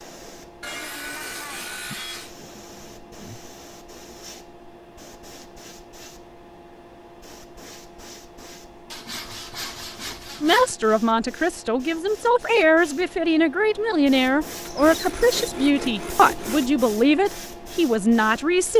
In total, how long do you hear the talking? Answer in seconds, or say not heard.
8 s.